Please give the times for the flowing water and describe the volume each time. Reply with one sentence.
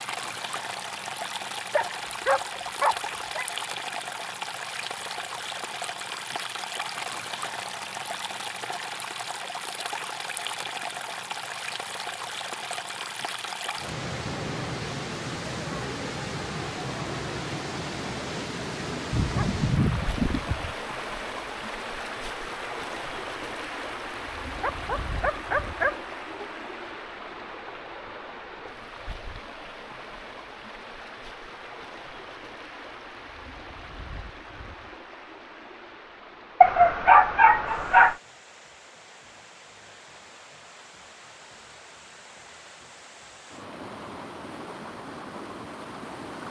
The flowing water can be heard from 0.0 to 46.4 s, getting quieter.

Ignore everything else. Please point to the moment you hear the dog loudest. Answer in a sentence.
The loudest moment of the dog is at 37 seconds.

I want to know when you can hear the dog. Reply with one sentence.
The dog can be heard from 1.8 to 3.5 s, from 19.1 to 20.8 s, from 24.6 to 26.4 s and from 36.6 to 38.1 s.